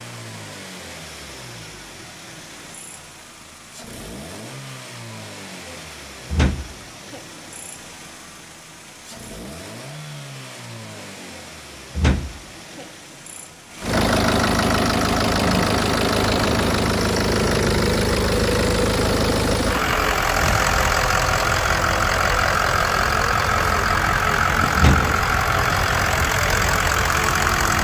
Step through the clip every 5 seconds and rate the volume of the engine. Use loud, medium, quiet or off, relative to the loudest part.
quiet, quiet, medium, loud, loud, loud.